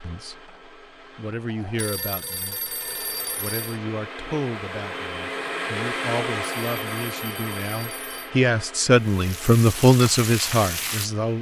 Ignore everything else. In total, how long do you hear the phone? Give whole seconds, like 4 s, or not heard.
4 s.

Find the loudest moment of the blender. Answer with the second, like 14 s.
6 s.